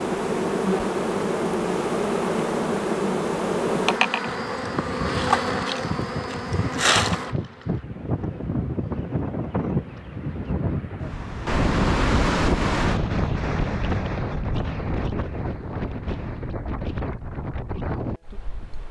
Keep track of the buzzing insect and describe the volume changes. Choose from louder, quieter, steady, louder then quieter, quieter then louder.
quieter.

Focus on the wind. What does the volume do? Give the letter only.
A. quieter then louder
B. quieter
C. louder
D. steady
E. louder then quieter
E.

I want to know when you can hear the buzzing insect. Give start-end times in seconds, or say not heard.
0.0-10.6.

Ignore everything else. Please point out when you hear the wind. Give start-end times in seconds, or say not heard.
4.2-18.8.